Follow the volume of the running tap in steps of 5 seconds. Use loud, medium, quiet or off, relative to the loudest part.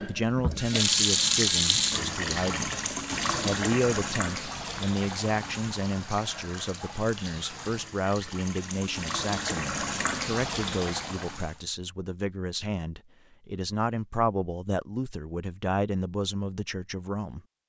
loud, medium, medium, off.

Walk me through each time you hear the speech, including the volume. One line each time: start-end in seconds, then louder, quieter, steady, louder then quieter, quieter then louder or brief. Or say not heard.
0.0-2.8 brief
3.4-17.4 steady.